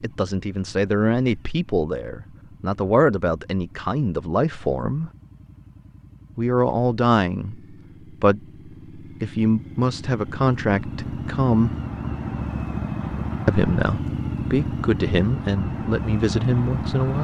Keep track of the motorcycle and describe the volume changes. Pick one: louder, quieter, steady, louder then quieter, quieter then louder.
louder.